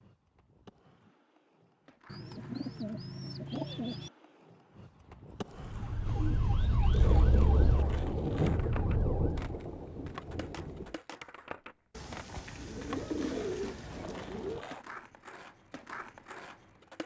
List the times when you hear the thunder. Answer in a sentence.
You can hear the thunder from 7.0 to 10.9 s.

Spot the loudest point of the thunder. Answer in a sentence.
The volume of the thunder peaks at 8 seconds.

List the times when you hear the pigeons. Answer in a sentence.
You can hear the pigeons from 2.0 to 4.1 s, from 6.0 to 7.8 s and from 11.9 to 14.7 s.